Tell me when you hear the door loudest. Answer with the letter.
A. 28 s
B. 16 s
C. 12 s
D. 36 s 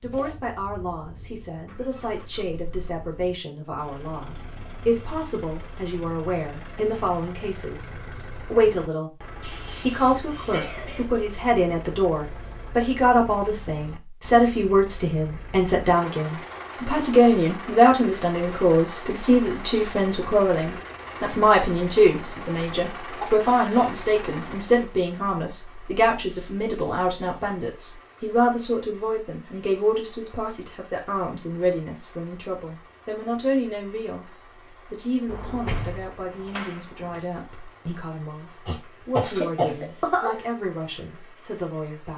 D.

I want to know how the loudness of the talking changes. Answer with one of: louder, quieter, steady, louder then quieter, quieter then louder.
louder then quieter.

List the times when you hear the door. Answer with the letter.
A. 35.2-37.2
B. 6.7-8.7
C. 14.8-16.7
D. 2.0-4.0
A.